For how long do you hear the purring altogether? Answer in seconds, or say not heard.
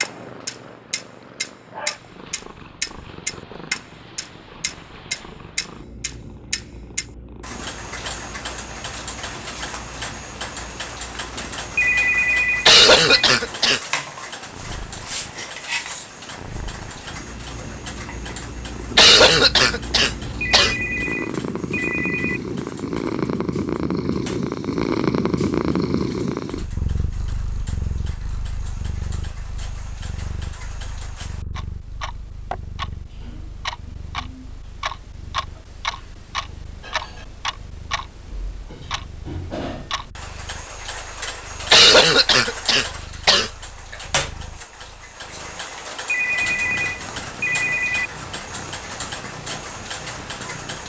51 s.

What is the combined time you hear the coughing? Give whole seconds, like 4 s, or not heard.
5 s.